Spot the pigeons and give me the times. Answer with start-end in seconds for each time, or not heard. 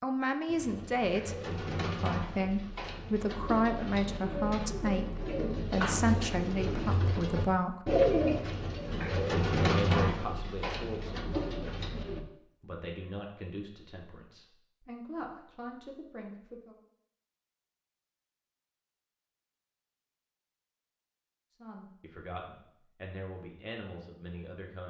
0.5-12.2.